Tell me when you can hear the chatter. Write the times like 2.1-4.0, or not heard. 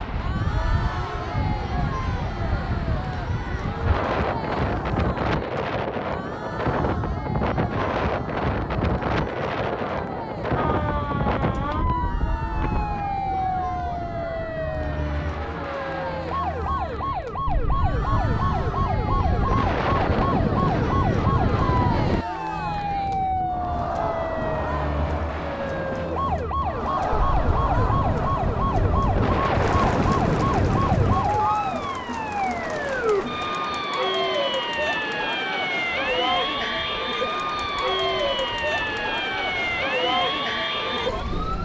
0.1-41.6.